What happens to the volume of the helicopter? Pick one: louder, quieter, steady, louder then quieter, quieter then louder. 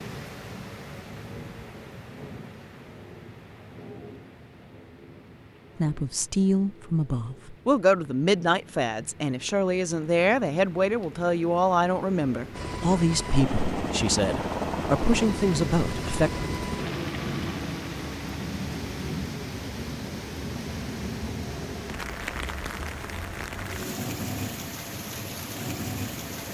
quieter.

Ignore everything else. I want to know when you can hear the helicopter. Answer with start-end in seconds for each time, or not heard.
12.5-26.4.